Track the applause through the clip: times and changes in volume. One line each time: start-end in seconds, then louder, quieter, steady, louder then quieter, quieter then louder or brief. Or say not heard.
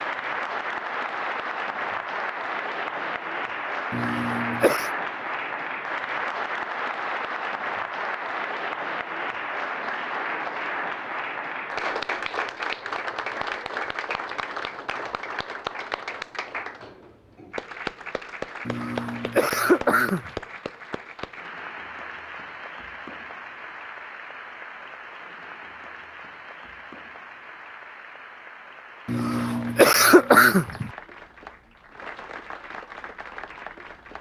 0.0-34.1 quieter.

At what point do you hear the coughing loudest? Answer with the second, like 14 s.
30 s.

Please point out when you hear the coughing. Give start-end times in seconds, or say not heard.
3.9-4.9, 18.6-20.3, 29.1-30.9.